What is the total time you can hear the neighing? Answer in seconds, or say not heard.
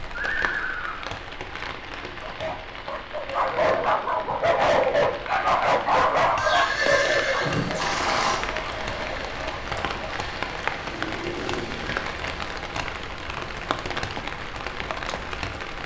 4 s.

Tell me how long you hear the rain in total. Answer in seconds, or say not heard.
16 s.